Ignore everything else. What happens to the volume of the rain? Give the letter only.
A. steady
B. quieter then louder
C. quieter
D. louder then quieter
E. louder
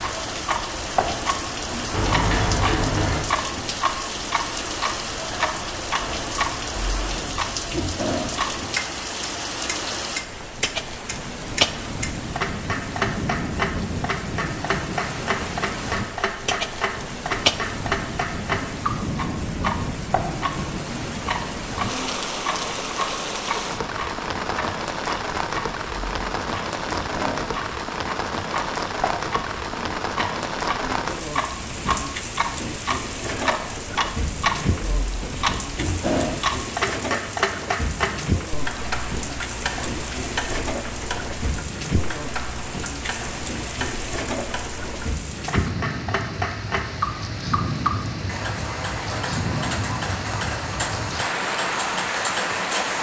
A.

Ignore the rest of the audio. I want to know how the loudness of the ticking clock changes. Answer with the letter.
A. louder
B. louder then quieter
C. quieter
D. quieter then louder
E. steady
E.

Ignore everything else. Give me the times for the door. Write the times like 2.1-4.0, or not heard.
1.9-3.2.